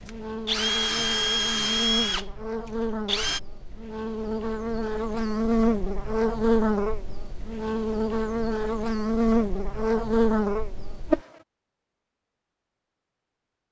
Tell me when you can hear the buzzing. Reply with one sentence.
You can hear the buzzing from 0.0 to 11.2 s.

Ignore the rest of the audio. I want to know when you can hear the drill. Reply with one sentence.
The drill can be heard from 0.1 to 3.4 s.